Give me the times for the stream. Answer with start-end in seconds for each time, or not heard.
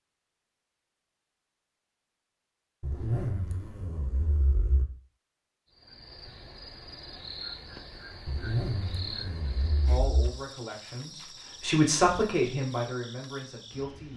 not heard.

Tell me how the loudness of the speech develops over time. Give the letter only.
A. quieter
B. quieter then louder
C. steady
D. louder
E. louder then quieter
E.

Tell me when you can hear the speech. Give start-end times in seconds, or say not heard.
9.8-14.1.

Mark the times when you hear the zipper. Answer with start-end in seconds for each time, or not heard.
2.8-4.8, 8.2-10.3.